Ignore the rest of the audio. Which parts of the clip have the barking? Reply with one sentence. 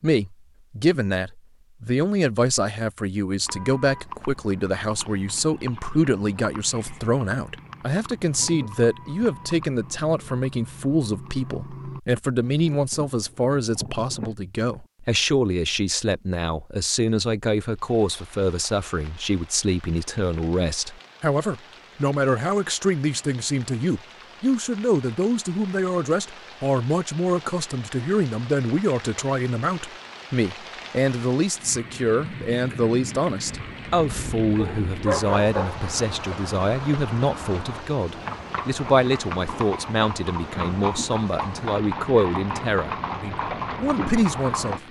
The barking can be heard from 34.5 to 35.9 s.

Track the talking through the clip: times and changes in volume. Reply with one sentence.
The talking can be heard from 0.0 to 44.8 s, at a steady volume.